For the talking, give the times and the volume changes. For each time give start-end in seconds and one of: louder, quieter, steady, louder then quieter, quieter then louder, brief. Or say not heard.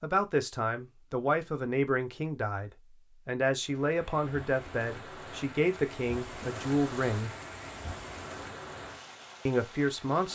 0.0-7.3 steady
9.4-10.3 brief.